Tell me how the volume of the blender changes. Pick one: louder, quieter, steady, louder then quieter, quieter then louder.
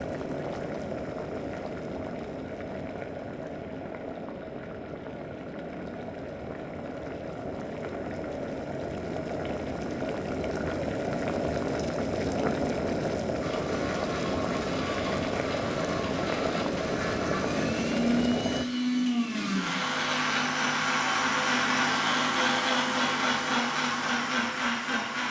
louder.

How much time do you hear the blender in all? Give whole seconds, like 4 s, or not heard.
12 s.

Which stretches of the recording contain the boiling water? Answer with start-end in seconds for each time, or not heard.
0.0-18.6.